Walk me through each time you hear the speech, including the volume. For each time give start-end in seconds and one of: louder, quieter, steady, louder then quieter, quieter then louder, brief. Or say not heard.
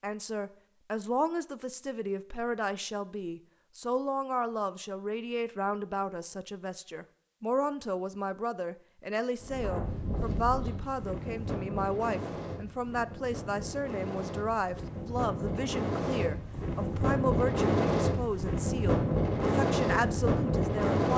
0.0-21.1 steady.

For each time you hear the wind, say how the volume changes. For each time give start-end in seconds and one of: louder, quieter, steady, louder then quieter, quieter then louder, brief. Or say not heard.
9.4-21.1 louder.